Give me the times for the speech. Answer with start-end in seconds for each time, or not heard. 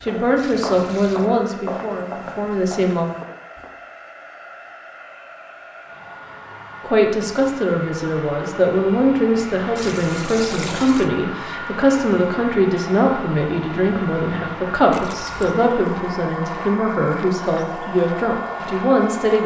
0.0-3.1, 6.8-19.4.